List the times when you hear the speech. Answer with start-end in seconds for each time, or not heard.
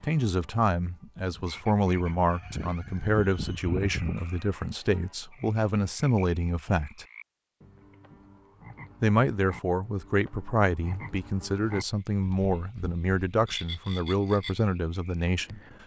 0.0-7.0, 9.0-15.6.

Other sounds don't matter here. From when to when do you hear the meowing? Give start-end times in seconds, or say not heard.
not heard.